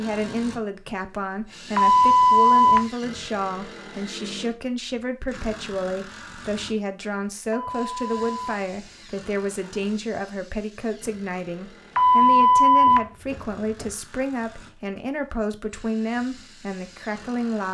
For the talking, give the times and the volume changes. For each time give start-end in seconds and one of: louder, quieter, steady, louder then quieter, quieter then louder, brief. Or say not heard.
0.0-17.6 steady.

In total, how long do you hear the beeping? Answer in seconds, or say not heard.
4 s.